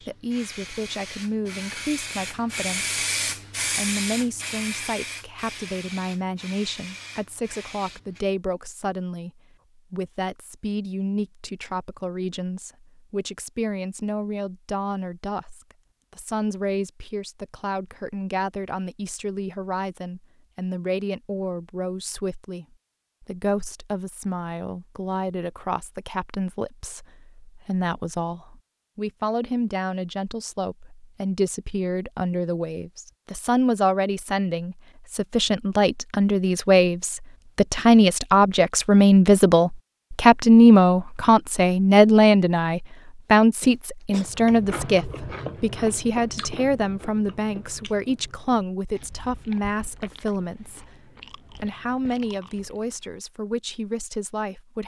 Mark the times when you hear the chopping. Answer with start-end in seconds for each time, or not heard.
not heard.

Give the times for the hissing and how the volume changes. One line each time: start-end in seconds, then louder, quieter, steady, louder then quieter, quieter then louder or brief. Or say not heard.
0.0-8.2 louder then quieter.